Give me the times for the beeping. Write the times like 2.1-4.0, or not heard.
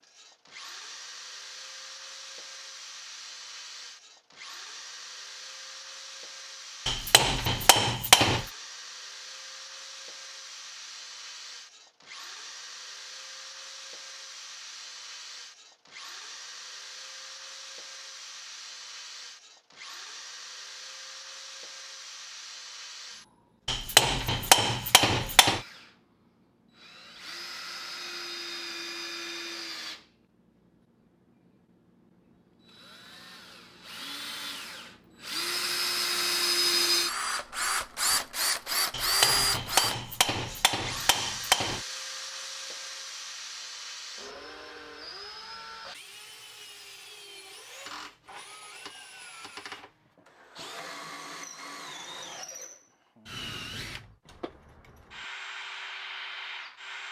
not heard.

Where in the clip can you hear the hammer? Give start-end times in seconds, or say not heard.
6.8-8.4, 23.6-25.6, 38.9-41.8.